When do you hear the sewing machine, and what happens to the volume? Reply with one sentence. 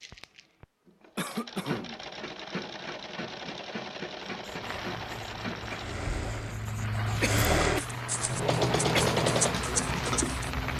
The sewing machine can be heard from 0.0 to 10.7 s, getting louder.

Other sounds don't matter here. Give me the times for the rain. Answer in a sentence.
You can hear the rain from 4.6 to 10.7 s.